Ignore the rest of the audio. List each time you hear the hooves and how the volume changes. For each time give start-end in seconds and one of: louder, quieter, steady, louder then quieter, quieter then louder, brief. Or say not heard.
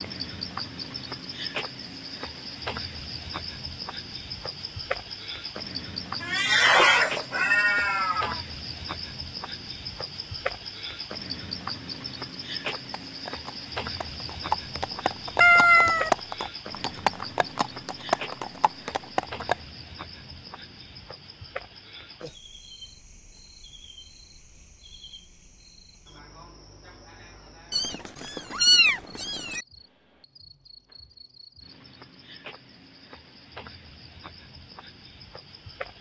12.7-19.6 louder.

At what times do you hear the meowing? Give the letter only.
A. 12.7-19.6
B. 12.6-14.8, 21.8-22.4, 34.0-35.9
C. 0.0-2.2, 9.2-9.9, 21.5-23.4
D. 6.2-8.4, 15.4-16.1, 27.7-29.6
D.